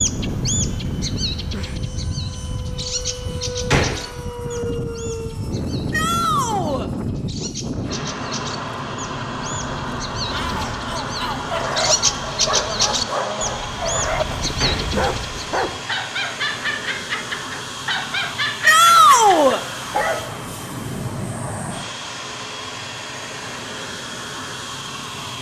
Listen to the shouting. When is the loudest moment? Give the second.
19 s.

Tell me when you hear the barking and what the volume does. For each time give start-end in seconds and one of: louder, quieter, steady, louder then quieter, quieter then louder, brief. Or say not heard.
11.4-20.4 steady.